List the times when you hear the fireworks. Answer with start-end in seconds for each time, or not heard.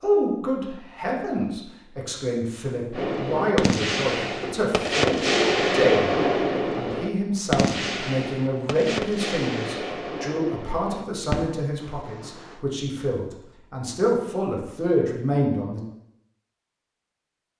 2.9-12.6.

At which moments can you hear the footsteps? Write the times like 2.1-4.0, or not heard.
not heard.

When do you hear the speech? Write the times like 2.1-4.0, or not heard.
0.0-6.1, 6.8-15.8.